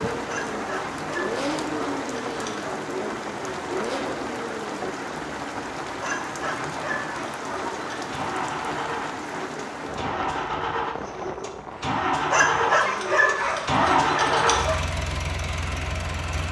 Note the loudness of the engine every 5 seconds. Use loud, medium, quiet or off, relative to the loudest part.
medium, medium, loud, medium.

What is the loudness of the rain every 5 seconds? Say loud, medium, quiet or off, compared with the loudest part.
loud, loud, medium, medium.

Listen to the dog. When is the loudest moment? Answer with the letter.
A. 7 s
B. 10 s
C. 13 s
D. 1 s
C.